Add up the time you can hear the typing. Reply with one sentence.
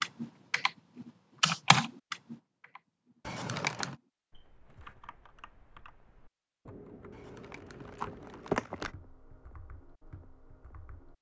The typing can be heard for 11 seconds in total.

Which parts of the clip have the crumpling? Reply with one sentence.
The crumpling can be heard from 3.2 to 4.0 s and from 7.2 to 8.9 s.